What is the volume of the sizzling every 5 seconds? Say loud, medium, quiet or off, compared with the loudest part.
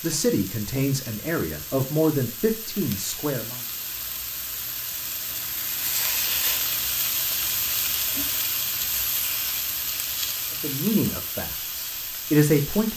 medium, loud, medium.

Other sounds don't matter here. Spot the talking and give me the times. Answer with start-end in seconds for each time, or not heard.
0.0-3.6, 10.6-12.9.